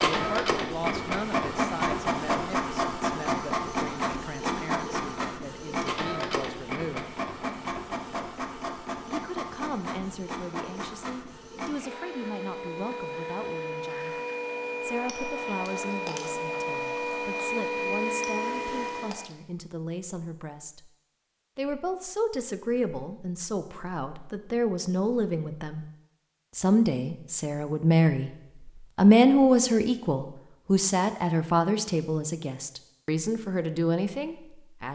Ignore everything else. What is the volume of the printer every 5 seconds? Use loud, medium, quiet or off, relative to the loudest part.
loud, medium, medium, loud, off, off, off.